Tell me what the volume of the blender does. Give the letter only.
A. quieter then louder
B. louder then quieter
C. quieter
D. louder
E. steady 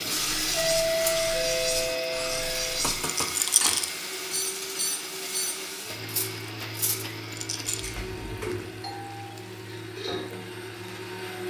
C.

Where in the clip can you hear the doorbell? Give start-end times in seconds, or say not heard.
0.5-2.8, 8.8-9.4.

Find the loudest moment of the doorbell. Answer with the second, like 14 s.
1 s.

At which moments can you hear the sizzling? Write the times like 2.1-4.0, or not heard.
0.0-11.4.